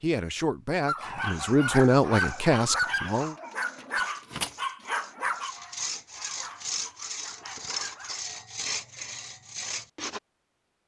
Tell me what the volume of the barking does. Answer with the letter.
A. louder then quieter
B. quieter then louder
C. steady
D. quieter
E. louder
D.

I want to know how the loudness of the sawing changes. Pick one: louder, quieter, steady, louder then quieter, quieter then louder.
louder.